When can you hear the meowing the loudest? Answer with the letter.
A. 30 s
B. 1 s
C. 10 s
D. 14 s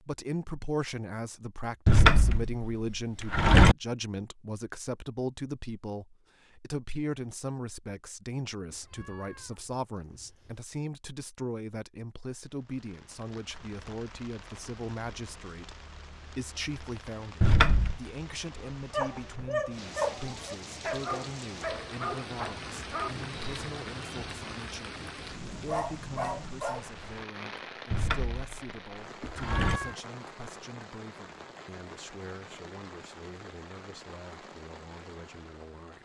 A.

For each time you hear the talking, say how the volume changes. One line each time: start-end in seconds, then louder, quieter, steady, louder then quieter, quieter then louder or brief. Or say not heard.
0.1-35.9 quieter.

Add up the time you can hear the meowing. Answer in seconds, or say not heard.
3 s.